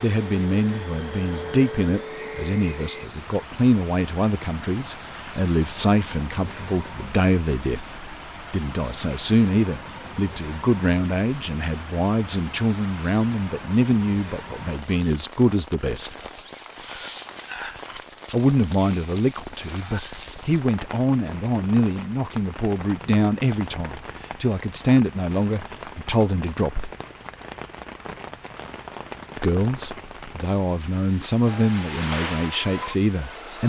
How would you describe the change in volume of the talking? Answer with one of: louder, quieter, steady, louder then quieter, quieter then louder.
steady.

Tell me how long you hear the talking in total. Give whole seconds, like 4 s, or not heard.
29 s.